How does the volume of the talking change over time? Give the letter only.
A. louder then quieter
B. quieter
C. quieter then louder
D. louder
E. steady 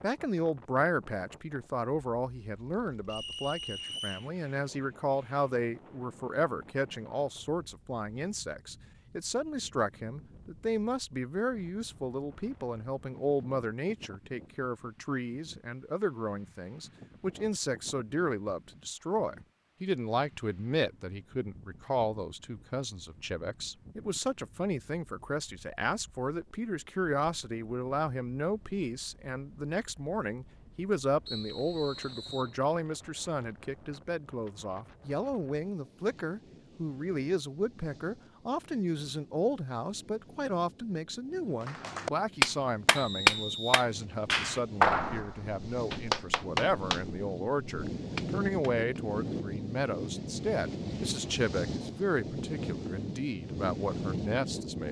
E.